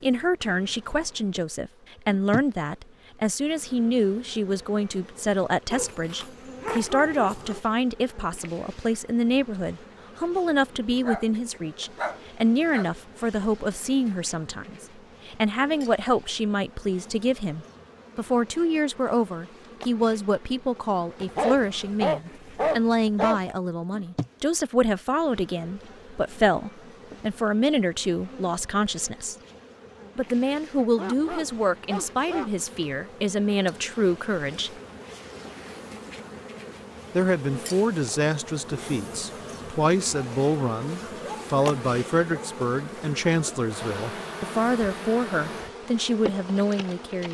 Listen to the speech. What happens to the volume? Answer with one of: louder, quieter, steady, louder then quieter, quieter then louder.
steady.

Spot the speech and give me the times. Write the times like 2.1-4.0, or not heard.
0.0-29.4, 30.1-34.7, 37.1-47.3.